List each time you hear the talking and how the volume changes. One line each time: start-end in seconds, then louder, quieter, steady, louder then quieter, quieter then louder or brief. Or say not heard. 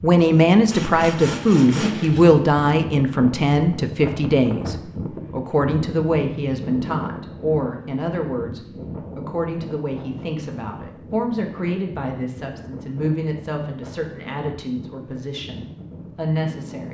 0.0-16.8 quieter.